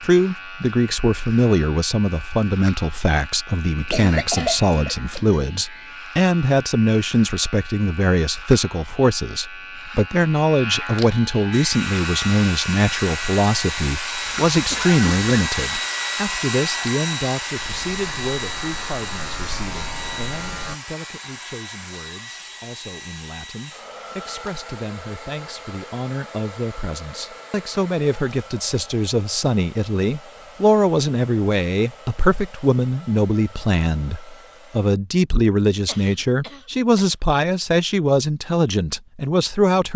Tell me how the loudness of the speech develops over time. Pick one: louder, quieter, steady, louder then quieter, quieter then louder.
quieter then louder.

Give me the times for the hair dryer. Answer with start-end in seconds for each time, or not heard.
11.5-35.0.